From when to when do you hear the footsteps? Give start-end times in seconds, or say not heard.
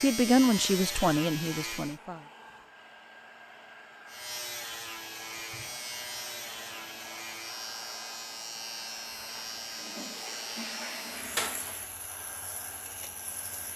not heard.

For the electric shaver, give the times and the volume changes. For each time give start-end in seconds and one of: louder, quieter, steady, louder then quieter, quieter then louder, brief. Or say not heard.
0.0-2.0 brief
4.0-13.7 quieter.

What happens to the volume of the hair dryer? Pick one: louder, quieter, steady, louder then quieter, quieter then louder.
steady.